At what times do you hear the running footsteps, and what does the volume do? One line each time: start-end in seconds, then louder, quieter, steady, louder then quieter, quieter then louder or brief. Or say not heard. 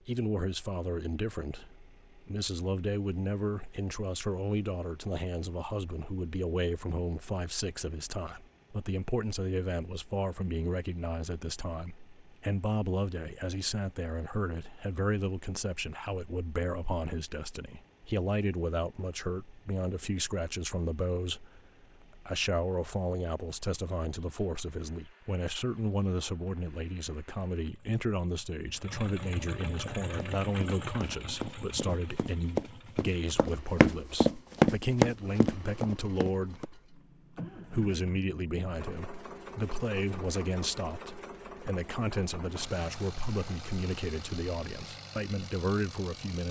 29.8-36.7 louder then quieter.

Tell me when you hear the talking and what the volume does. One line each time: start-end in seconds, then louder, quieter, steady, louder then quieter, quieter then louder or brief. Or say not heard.
0.1-46.4 steady.